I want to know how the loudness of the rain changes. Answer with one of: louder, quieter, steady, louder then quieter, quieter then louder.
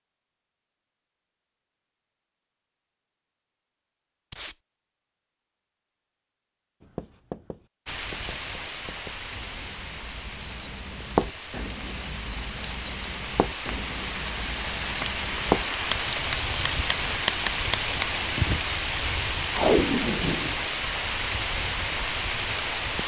louder.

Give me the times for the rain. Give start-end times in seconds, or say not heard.
7.8-23.0.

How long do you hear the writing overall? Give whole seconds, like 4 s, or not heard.
12 s.